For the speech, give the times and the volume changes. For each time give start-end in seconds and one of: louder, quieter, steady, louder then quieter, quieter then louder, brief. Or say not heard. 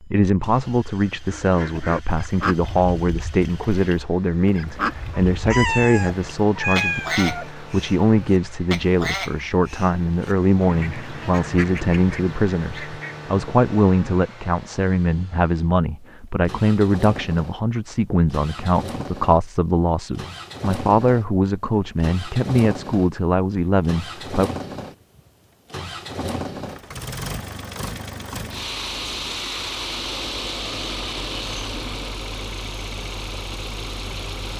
0.0-24.5 steady.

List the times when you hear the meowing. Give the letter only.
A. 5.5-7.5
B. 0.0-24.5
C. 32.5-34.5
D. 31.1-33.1
A.